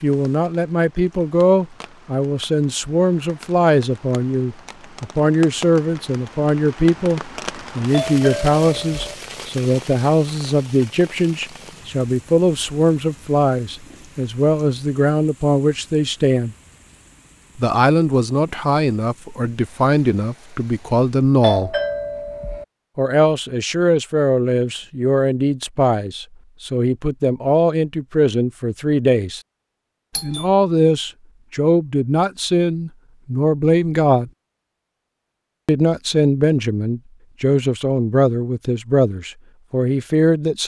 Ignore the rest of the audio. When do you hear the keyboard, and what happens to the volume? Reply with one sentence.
The keyboard can't be heard in this clip.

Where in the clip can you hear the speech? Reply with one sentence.
You can hear the speech from 0.0 to 16.6 s, from 17.6 to 21.8 s, from 22.9 to 29.4 s, from 30.2 to 34.3 s and from 35.6 to 40.6 s.